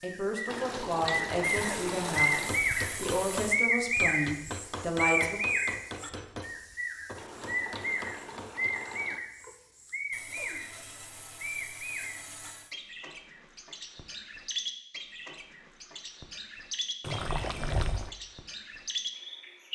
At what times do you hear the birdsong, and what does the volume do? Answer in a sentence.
You can hear the birdsong from 0.0 to 19.6 s, getting quieter.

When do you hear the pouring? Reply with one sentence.
The pouring can be heard from 0.5 to 2.5 s, from 7.2 to 9.2 s and from 17.0 to 18.1 s.